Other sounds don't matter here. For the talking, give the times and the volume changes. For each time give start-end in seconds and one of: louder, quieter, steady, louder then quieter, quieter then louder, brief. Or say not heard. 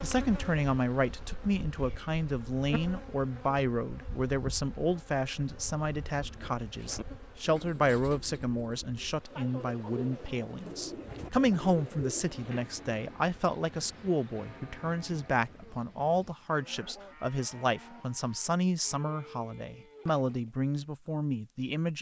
0.0-21.9 steady.